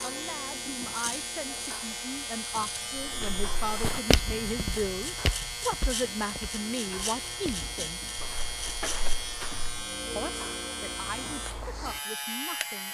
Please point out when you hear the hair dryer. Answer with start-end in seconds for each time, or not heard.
not heard.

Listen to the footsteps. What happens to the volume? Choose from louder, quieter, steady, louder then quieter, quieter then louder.
quieter then louder.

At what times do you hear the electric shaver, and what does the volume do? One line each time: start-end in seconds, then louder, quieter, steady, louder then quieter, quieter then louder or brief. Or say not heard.
0.0-12.8 steady.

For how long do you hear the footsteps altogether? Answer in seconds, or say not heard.
7 s.